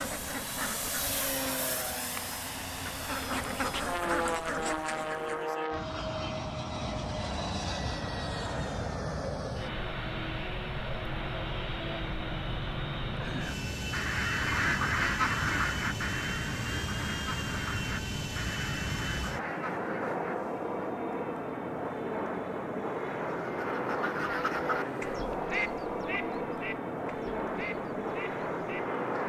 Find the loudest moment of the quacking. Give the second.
15 s.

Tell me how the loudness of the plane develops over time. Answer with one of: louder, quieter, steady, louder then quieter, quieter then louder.
steady.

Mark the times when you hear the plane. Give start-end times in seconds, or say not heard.
0.0-29.2.